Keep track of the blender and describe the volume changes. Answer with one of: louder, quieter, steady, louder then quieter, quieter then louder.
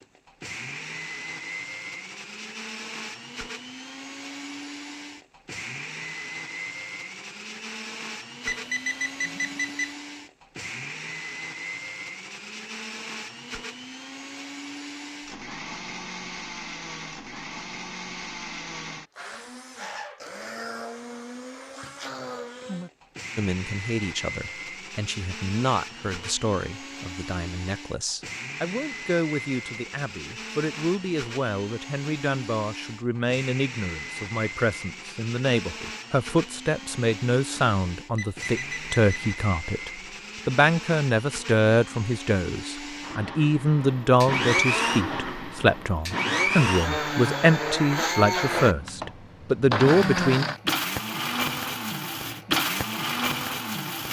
louder.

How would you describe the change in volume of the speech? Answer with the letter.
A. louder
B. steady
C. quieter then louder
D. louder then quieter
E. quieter
A.